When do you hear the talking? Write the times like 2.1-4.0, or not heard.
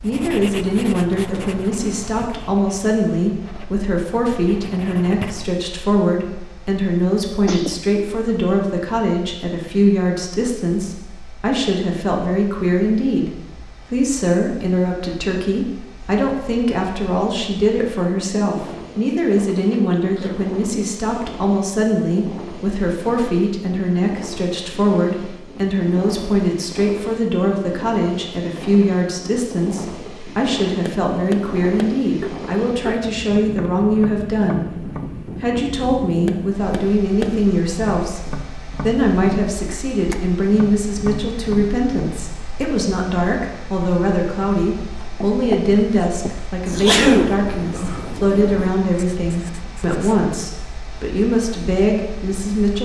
0.0-52.7.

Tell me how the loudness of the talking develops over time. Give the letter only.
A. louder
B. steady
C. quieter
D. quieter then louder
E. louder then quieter
B.